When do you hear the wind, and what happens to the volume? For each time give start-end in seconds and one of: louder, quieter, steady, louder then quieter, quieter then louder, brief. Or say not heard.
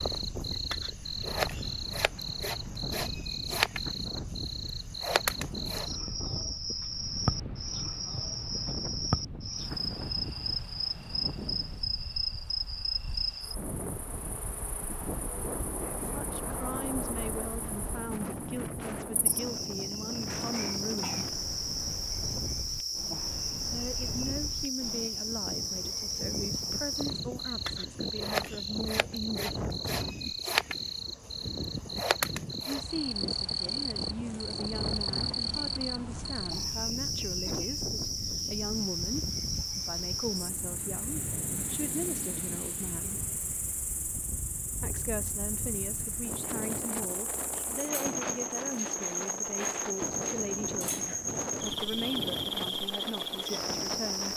0.0-54.3 steady.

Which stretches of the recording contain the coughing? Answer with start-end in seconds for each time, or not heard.
20.4-21.3, 37.5-38.0.